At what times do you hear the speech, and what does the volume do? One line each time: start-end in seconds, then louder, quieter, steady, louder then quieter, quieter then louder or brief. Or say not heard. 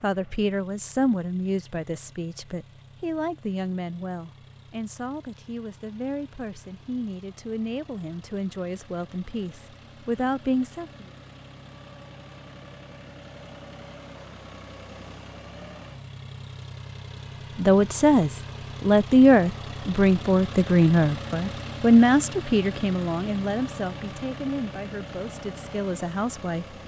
0.0-11.1 quieter then louder
17.6-26.6 quieter.